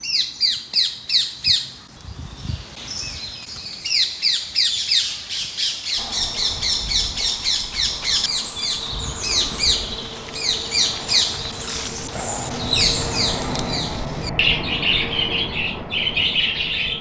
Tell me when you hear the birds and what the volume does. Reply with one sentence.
You can hear the birds from 0.0 to 16.9 s, at a steady volume.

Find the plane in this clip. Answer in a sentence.
You can hear the plane from 6.0 to 16.9 s.